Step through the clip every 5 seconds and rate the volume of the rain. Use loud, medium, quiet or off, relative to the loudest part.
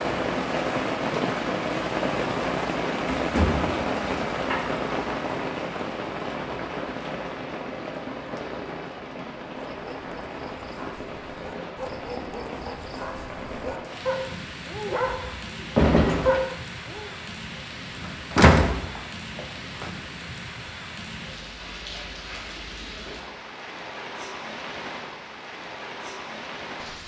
loud, medium, medium, medium, medium, medium.